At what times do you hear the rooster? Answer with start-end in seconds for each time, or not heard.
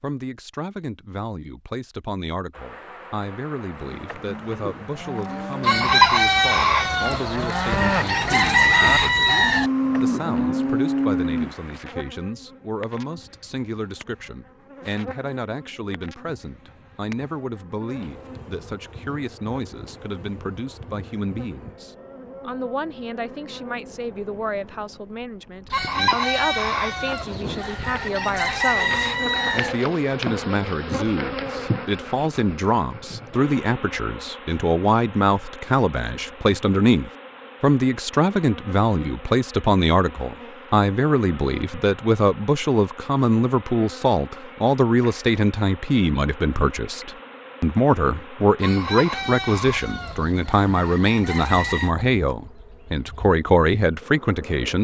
5.6-9.7, 25.7-29.8, 48.6-51.9.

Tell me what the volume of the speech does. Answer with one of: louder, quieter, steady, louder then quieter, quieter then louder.
louder.